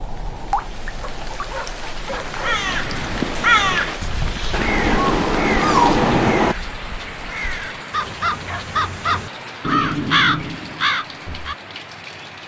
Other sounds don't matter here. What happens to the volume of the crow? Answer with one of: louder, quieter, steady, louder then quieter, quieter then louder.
quieter then louder.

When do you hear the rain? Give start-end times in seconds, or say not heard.
0.0-12.4.